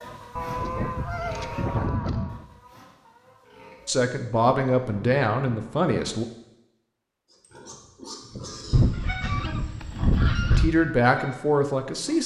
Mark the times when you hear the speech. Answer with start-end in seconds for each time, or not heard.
3.9-6.2, 10.6-12.2.